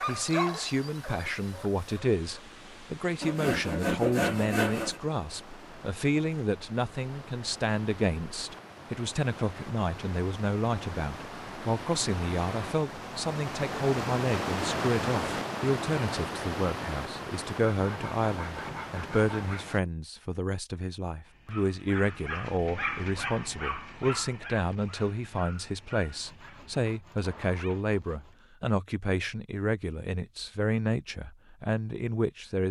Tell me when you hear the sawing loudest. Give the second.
4 s.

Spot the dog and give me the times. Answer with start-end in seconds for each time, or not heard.
0.0-2.2, 21.2-27.8.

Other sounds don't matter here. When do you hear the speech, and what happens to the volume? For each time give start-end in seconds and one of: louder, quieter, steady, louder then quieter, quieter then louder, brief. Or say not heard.
0.1-32.6 steady.